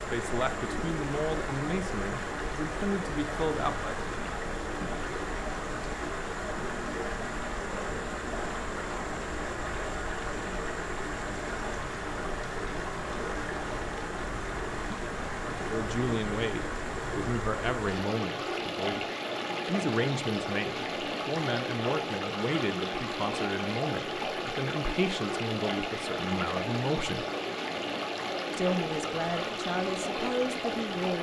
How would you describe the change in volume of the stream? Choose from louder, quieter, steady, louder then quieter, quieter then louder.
steady.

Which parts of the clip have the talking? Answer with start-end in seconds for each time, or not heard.
0.1-4.1, 15.7-19.1, 19.6-27.2, 28.5-31.1.